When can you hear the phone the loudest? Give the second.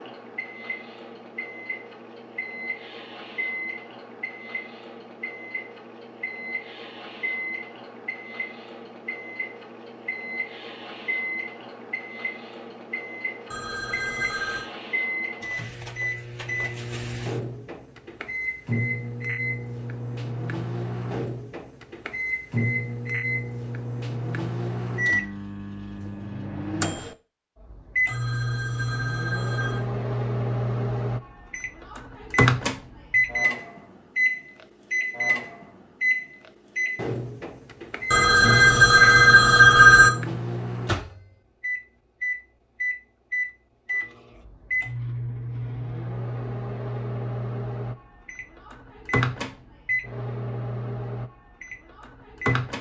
40 s.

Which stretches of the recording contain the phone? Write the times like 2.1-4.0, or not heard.
13.5-14.7, 28.1-29.9, 38.1-40.1.